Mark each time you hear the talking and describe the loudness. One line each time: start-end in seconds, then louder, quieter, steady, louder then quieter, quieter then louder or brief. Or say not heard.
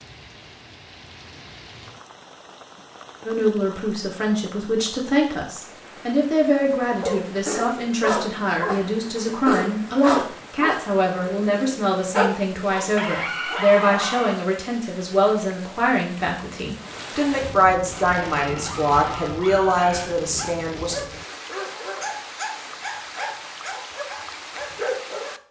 3.2-20.9 steady.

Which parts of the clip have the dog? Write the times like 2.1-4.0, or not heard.
7.0-14.3, 17.9-25.4.